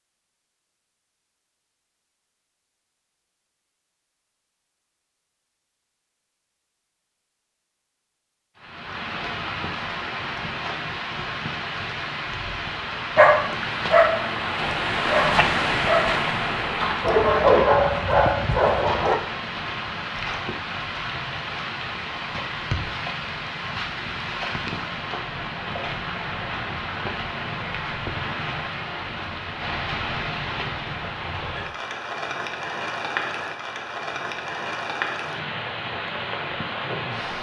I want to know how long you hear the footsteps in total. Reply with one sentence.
The footsteps can't be heard in this clip.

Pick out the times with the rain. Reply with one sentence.
The rain can be heard from 8.6 to 37.3 s.